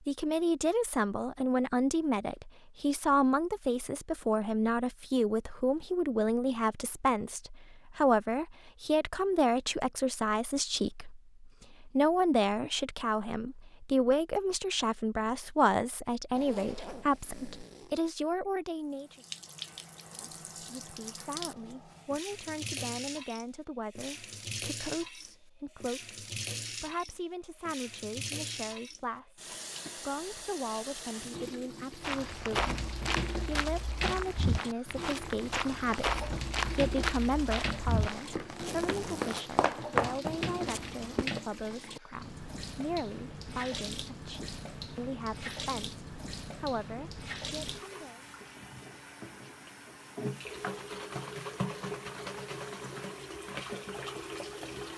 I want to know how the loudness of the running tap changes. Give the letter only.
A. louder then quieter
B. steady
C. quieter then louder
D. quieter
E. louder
B.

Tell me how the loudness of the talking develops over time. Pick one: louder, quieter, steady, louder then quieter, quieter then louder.
quieter.